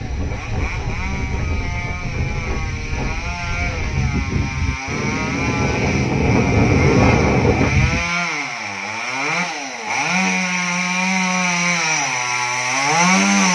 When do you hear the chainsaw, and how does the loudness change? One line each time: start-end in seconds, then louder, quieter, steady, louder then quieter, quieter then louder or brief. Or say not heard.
0.0-13.5 louder.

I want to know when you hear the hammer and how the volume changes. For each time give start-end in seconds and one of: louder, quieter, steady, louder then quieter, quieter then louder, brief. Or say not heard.
not heard.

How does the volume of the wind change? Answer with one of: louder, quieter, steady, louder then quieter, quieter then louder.
louder.